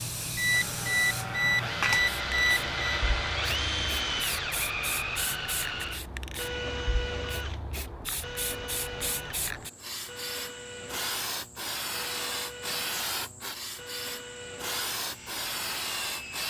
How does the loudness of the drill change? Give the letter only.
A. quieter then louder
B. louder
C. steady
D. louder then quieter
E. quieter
E.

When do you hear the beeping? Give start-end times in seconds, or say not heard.
0.3-3.0.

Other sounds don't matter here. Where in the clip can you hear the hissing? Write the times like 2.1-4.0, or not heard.
0.0-16.4.